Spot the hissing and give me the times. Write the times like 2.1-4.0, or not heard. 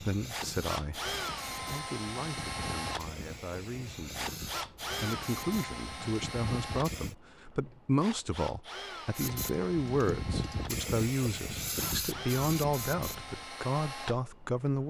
0.0-7.2, 9.2-13.4.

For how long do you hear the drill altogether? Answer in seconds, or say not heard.
15 s.